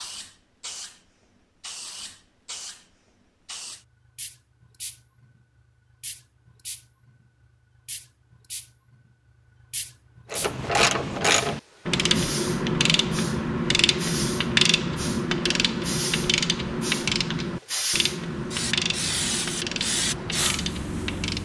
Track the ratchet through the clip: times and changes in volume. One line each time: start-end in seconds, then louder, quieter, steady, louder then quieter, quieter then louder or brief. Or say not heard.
10.3-21.4 quieter.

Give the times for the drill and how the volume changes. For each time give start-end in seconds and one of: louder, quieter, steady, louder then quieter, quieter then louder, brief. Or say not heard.
not heard.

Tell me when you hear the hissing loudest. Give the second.
20 s.